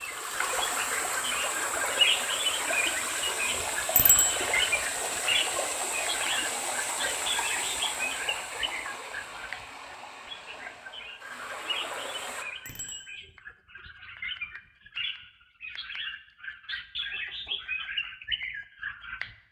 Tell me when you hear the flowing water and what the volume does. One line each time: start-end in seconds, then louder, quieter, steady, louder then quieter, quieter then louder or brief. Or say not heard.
0.0-12.4 quieter.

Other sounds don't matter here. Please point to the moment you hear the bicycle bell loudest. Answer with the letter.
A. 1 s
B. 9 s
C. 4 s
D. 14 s
C.